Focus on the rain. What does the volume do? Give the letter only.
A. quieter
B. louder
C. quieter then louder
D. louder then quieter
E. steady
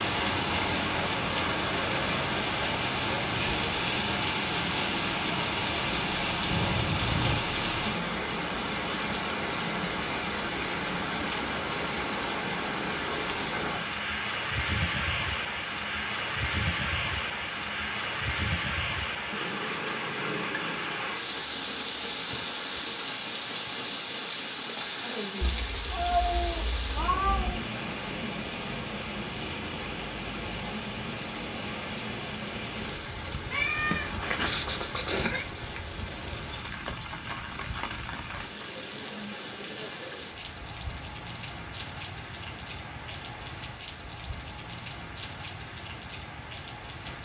A.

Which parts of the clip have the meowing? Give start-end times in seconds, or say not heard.
6.5-7.5, 25.5-27.6, 33.5-35.5.